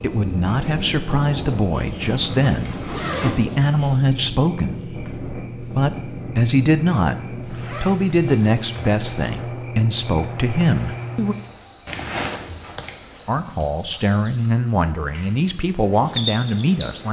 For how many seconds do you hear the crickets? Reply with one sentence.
The crickets can be heard for 17 seconds in total.